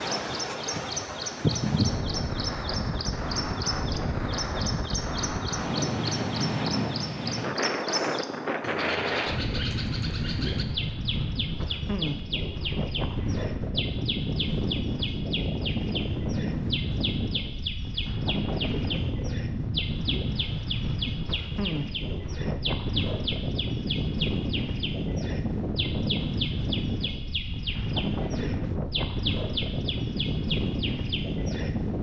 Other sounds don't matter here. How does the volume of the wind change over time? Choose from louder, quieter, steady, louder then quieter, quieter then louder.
steady.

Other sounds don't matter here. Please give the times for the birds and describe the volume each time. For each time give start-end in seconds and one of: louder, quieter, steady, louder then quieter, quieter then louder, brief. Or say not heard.
0.0-31.9 steady.